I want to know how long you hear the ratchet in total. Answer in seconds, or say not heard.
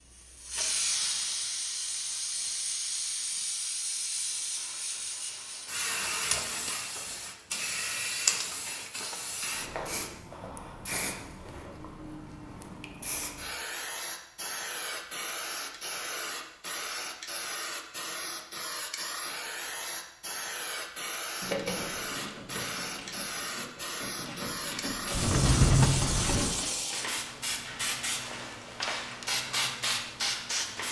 5 s.